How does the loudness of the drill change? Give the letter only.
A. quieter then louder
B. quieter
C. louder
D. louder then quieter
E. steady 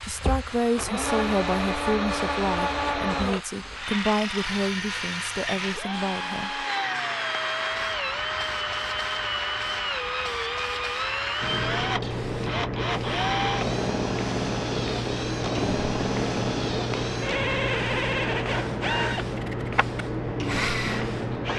E.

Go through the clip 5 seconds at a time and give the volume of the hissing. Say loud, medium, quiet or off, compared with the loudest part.
medium, quiet, loud, loud, loud.